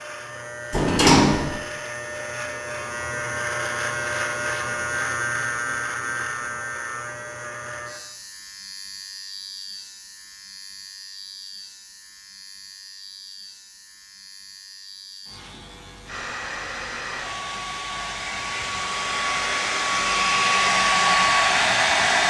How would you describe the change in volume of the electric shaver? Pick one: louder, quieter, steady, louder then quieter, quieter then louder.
quieter.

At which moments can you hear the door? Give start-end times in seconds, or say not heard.
0.7-1.6.